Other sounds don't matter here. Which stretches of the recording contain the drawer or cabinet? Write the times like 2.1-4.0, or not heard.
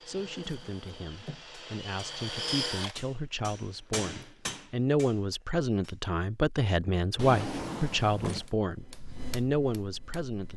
0.1-1.4, 7.2-8.5.